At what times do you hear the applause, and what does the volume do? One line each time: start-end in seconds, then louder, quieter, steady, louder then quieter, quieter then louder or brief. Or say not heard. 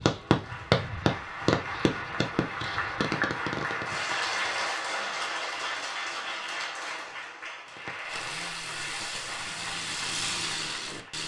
0.1-11.2 louder then quieter.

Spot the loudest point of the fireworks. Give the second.
1 s.